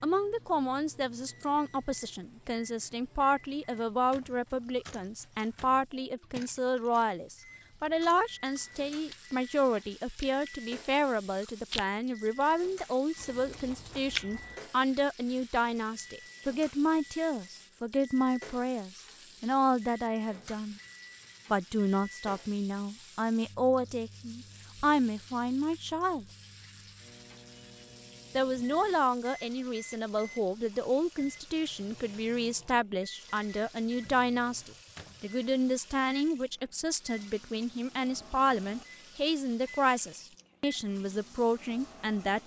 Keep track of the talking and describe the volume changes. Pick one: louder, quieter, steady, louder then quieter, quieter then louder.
steady.